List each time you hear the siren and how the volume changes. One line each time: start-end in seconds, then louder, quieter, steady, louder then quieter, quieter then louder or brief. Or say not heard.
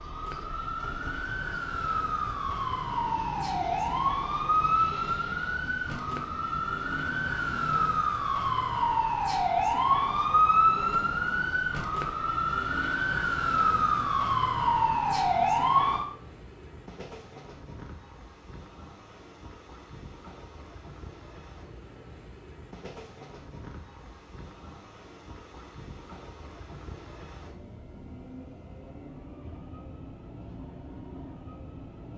0.0-16.1 louder.